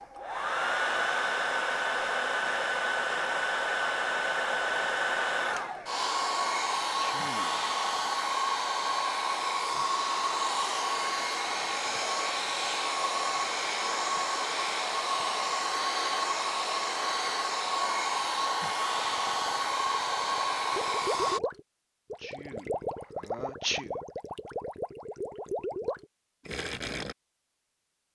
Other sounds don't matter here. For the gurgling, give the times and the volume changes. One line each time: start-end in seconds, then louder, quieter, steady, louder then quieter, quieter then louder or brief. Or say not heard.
19.1-27.1 louder.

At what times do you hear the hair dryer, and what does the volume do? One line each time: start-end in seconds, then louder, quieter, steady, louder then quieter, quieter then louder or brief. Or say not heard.
0.0-21.4 steady.